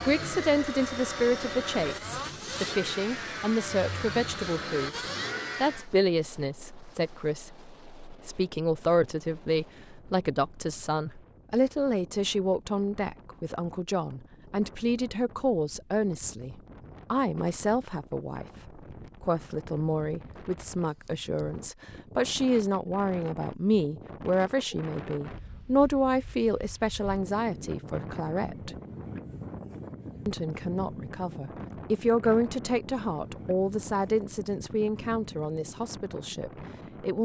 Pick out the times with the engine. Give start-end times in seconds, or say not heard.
0.0-5.9.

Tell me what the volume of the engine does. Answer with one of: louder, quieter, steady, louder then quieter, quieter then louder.
steady.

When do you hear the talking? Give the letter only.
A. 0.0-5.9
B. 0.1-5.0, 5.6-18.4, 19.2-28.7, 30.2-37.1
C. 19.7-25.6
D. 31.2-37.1
B.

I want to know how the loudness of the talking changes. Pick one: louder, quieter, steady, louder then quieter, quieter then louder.
steady.